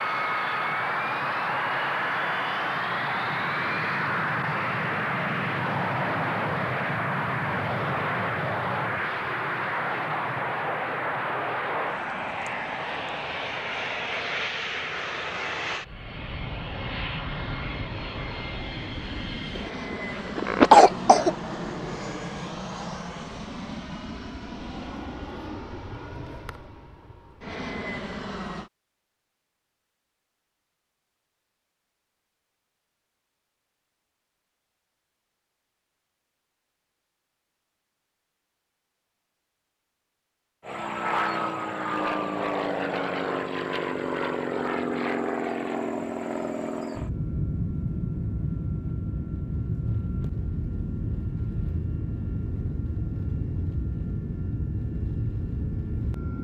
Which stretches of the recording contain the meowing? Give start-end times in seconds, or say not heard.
not heard.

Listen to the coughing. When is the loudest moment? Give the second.
21 s.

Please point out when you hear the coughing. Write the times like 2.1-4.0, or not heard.
20.2-21.9.